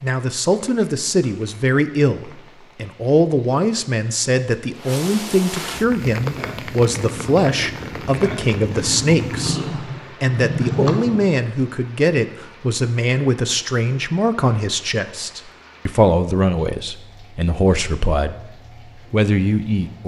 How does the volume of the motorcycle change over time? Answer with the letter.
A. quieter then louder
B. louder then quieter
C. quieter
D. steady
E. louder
E.